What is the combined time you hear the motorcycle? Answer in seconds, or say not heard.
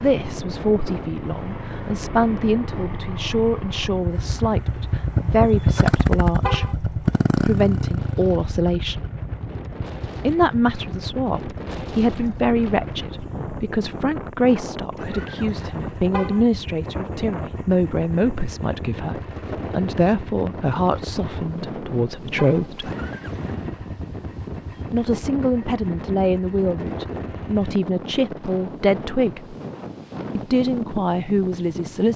28 s.